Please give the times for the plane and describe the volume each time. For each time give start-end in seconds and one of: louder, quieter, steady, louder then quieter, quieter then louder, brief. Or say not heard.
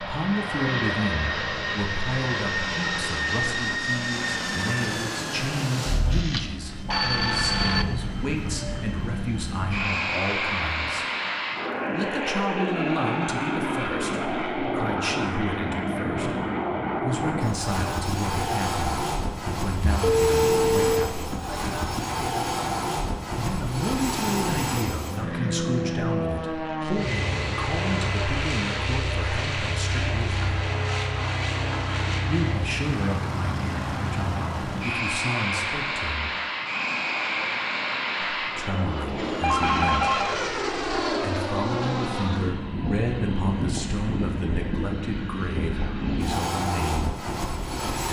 0.0-48.0 steady.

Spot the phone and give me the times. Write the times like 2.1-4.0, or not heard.
6.1-7.8, 20.0-21.1, 39.2-40.4.